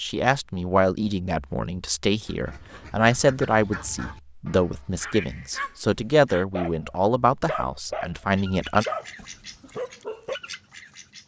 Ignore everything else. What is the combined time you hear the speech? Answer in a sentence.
You can hear the speech for 9 seconds altogether.